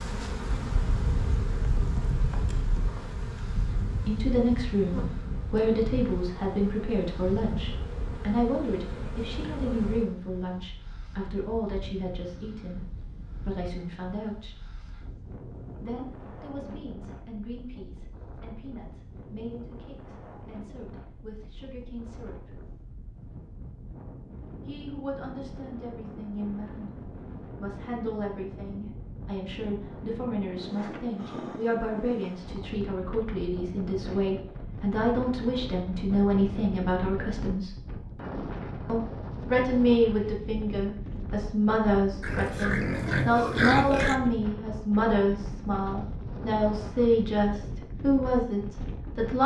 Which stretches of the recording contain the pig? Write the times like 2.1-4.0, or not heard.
42.2-44.2.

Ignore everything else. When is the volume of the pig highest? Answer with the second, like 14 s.
44 s.